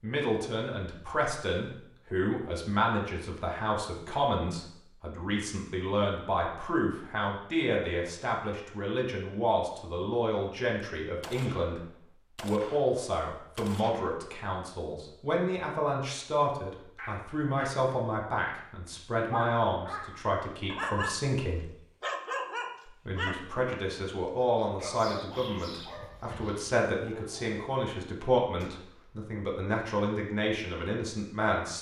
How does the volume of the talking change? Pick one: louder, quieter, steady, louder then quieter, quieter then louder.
steady.